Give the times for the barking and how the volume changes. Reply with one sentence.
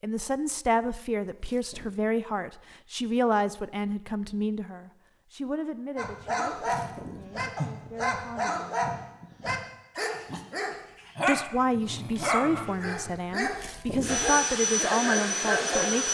The barking can be heard from 6.0 to 16.0 s, at a steady volume.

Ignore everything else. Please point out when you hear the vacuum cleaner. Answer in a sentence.
You can hear the vacuum cleaner from 14.0 to 16.0 s.